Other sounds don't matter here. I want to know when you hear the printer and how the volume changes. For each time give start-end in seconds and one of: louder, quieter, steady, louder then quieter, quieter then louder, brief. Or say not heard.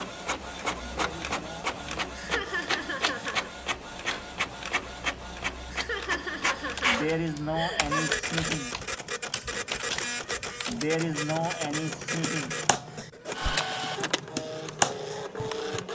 0.0-15.9 steady.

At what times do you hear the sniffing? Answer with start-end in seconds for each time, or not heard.
0.9-2.5, 6.8-8.8, 10.7-12.6.